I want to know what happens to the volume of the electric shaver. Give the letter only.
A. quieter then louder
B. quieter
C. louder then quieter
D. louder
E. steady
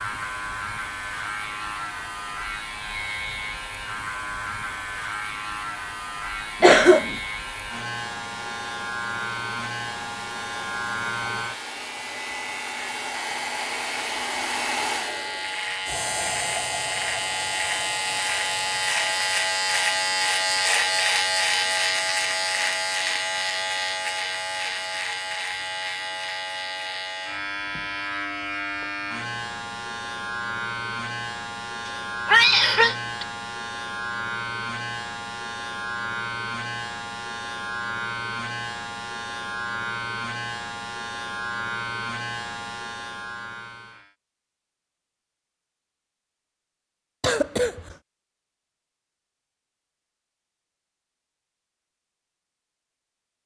C.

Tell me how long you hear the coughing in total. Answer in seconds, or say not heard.
2 s.